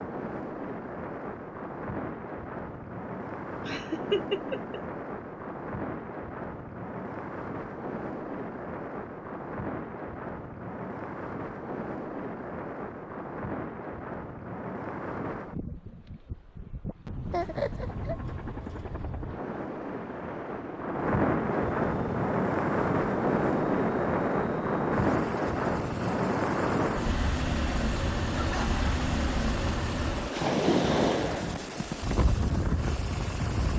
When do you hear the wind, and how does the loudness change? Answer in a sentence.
The wind can be heard from 0.0 to 33.7 s, getting louder.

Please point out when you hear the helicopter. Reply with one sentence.
The helicopter can be heard from 17.1 to 33.7 s.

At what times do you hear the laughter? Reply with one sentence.
The laughter can be heard from 3.6 to 4.8 s, from 17.3 to 18.1 s and from 28.3 to 28.8 s.